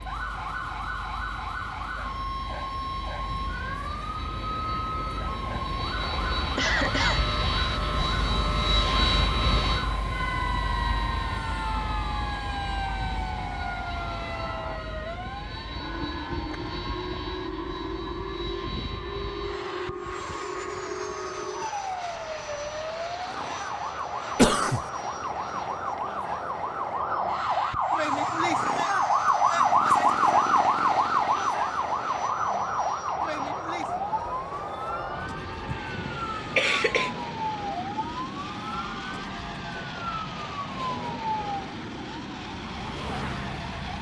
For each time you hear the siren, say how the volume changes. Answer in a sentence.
The siren can be heard from 0.0 to 43.9 s, getting louder then quieter.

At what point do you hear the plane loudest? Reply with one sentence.
The loudest moment of the plane is at 9 seconds.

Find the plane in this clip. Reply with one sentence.
The plane can be heard from 0.0 to 43.9 s.